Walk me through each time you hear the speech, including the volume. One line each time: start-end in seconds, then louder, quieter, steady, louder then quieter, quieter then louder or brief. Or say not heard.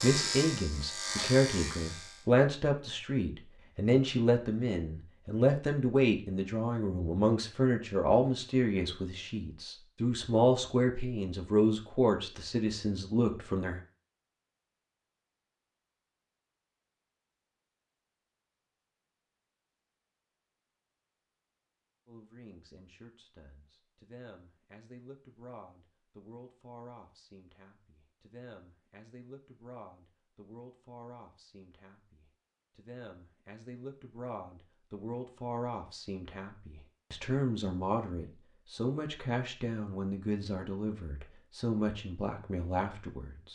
0.0-13.8 steady
22.1-43.5 louder.